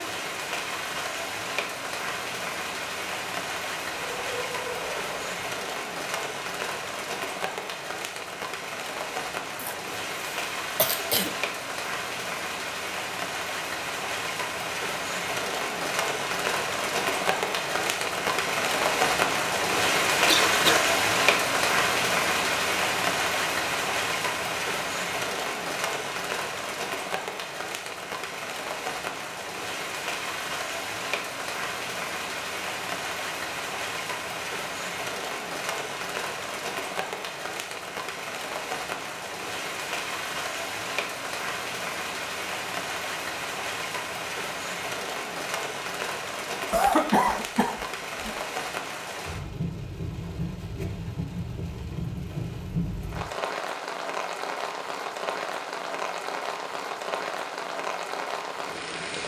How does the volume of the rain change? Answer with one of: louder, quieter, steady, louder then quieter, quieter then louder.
louder then quieter.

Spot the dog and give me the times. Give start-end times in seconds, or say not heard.
4.0-5.5.